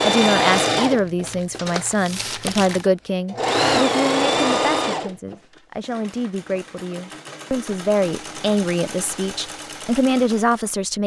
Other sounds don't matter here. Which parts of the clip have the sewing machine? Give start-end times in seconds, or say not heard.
0.0-10.8.